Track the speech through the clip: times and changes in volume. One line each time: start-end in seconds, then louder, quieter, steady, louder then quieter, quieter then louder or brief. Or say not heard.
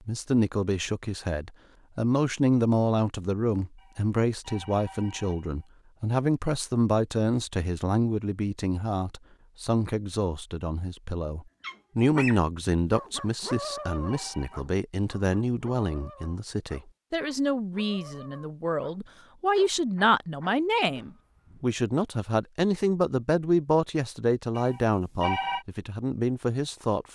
0.1-27.1 steady.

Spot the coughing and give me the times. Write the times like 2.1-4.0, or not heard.
not heard.